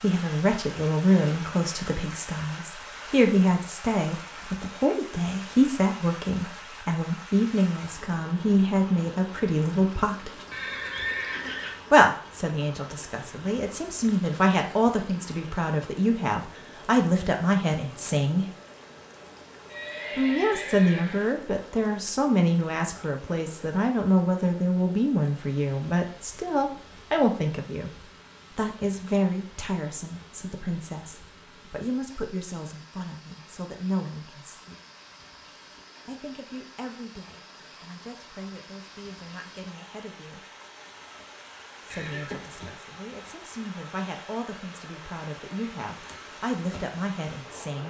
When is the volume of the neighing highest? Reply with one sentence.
The loudest moment of the neighing is at 11 seconds.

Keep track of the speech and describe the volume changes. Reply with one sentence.
The loudness of the speech goes down.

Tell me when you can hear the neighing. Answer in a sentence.
You can hear the neighing from 10.5 to 11.8 s, from 19.7 to 21.2 s and from 41.9 to 42.8 s.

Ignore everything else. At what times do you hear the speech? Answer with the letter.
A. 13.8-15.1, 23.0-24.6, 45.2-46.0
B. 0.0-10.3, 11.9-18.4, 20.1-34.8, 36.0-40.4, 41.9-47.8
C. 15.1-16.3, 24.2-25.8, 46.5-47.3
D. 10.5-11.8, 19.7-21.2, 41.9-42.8
B.